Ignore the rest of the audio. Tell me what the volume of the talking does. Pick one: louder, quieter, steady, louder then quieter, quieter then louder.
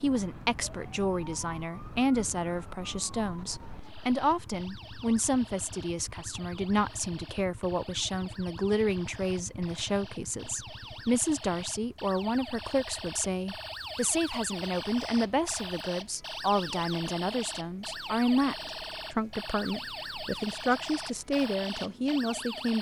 steady.